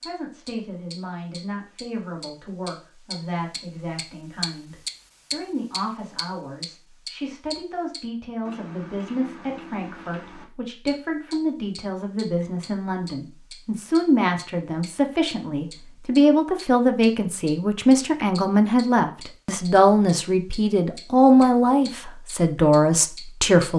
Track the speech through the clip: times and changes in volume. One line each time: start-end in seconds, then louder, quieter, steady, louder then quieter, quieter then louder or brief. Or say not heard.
0.1-23.7 louder.